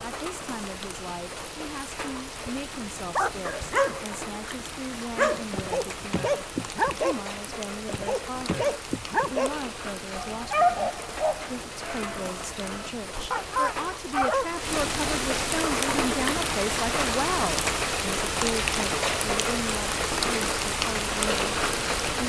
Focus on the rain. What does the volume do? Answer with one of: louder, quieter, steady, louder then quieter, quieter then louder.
louder.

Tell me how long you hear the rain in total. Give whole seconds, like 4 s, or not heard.
22 s.